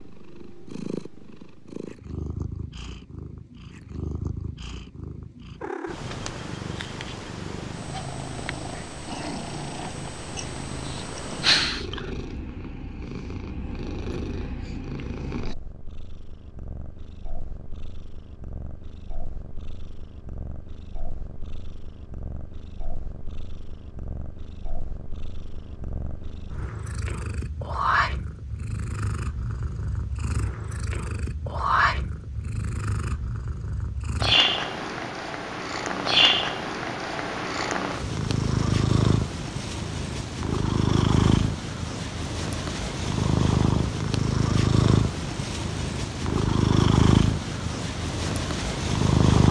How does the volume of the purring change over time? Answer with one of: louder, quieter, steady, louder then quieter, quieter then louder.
louder.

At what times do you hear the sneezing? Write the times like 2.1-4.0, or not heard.
10.8-12.0.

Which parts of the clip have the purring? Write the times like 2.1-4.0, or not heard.
0.0-49.4.